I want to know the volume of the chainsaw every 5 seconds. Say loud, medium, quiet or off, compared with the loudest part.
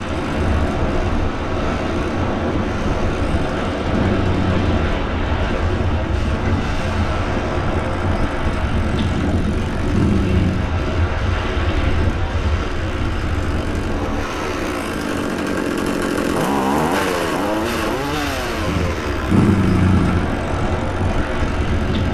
medium, medium, medium, loud, medium.